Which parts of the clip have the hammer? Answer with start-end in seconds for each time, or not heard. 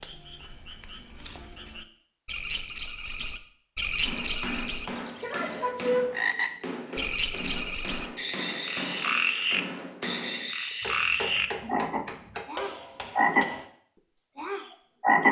4.0-13.7.